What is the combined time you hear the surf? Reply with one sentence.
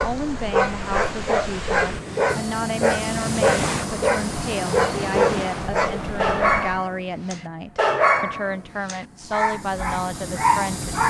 You can hear the surf for 7 seconds altogether.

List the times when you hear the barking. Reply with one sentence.
You can hear the barking from 0.0 to 11.0 s.